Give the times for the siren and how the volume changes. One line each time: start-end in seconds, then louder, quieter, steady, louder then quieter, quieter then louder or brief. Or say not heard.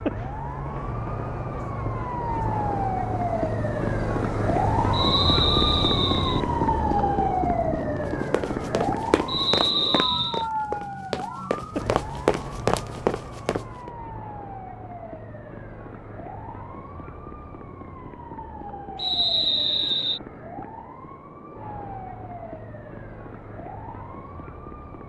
0.0-25.0 quieter.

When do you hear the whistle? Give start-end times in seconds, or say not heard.
4.9-6.4, 9.2-10.4, 18.9-20.2.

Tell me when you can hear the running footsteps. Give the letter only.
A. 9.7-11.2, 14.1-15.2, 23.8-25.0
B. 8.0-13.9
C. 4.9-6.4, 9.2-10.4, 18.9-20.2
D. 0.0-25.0
B.